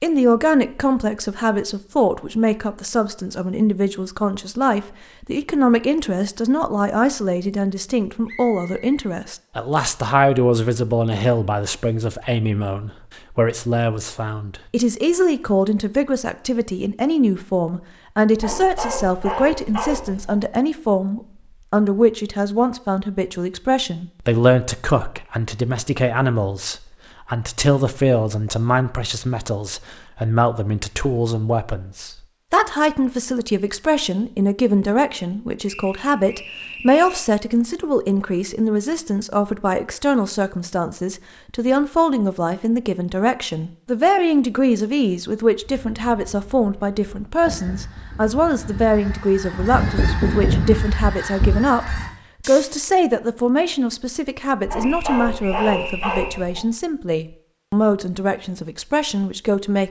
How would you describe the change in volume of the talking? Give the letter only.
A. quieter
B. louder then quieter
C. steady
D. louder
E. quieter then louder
C.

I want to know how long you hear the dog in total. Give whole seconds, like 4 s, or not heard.
4 s.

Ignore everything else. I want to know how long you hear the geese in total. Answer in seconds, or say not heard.
7 s.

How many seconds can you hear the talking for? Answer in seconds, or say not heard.
60 s.